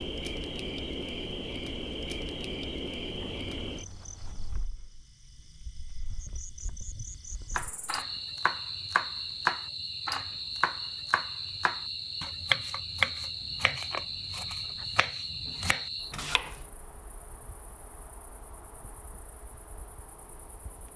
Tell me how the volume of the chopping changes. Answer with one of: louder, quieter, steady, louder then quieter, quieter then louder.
quieter.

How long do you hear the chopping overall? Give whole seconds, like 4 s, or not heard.
9 s.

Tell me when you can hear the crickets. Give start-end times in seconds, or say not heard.
0.0-20.9.